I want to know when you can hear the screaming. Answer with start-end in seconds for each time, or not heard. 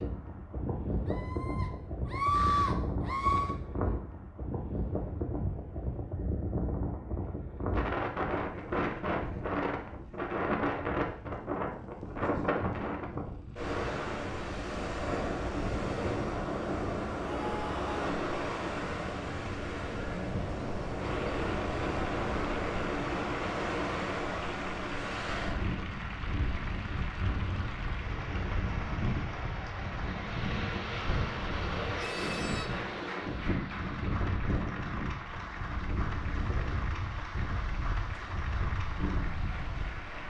1.1-3.5, 17.2-18.1, 31.9-32.7.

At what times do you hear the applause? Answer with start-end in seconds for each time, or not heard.
20.9-40.2.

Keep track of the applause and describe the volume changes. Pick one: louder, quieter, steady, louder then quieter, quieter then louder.
steady.